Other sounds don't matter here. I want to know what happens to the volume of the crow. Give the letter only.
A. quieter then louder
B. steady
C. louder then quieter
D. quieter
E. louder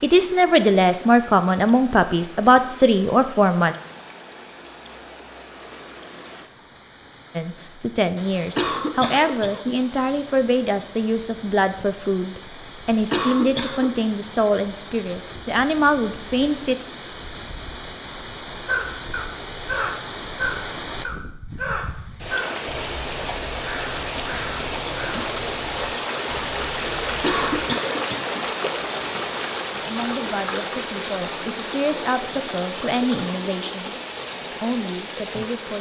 D.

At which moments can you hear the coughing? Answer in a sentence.
You can hear the coughing from 8.6 to 9.8 s, from 13.1 to 13.9 s and from 27.2 to 28.4 s.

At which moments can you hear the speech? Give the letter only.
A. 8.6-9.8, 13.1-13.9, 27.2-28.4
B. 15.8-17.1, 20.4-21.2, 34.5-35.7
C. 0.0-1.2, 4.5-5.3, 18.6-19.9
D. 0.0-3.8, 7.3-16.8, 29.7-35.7
D.